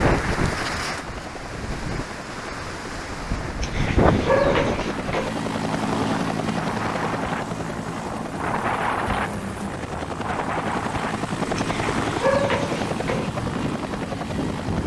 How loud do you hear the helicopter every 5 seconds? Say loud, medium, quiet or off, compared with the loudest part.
medium, loud, loud.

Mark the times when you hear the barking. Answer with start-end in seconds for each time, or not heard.
3.6-5.3, 11.6-13.3.